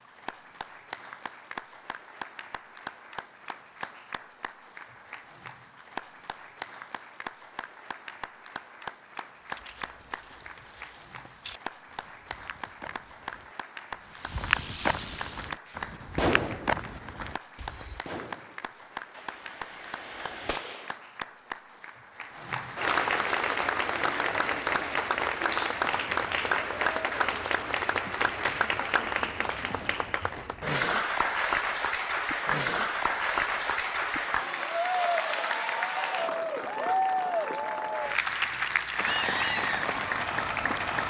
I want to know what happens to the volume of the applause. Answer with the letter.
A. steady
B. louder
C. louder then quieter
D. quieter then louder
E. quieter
B.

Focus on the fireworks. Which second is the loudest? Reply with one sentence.
The loudest moment of the fireworks is at 16 seconds.